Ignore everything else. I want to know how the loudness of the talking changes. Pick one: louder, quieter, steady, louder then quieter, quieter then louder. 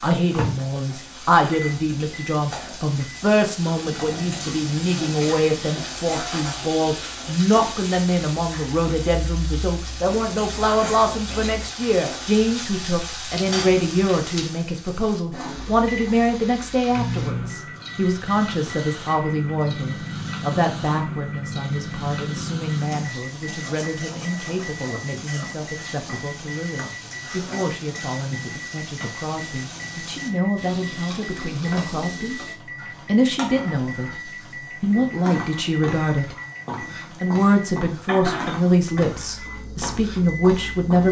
quieter then louder.